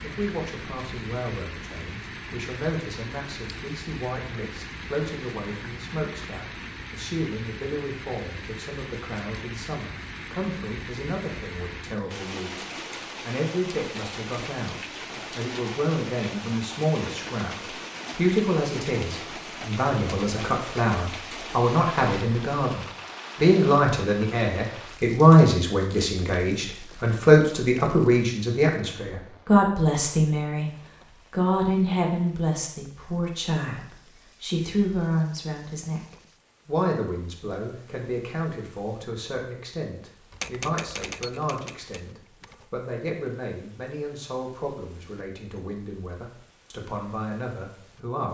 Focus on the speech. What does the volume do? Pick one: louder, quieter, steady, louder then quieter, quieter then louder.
louder then quieter.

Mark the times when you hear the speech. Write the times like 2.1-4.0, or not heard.
0.0-30.7, 31.3-48.2.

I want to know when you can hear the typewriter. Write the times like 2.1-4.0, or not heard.
40.3-42.9.